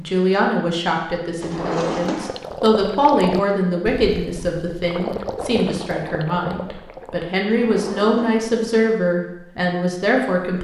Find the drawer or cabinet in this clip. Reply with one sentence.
The drawer or cabinet can be heard from 1.4 to 2.4 s and from 7.5 to 8.9 s.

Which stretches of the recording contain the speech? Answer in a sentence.
The speech can be heard from 0.0 to 10.5 s.